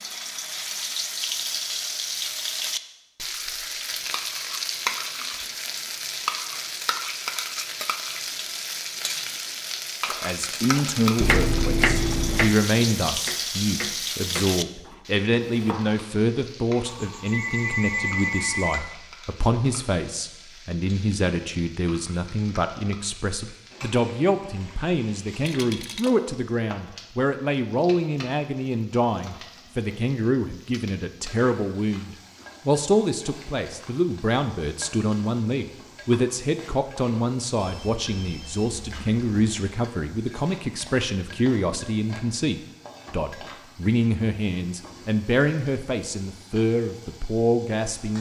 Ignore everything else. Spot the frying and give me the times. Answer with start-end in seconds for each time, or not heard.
0.0-48.1.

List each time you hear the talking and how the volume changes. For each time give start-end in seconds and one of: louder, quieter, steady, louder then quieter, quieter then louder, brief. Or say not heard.
10.1-48.1 steady.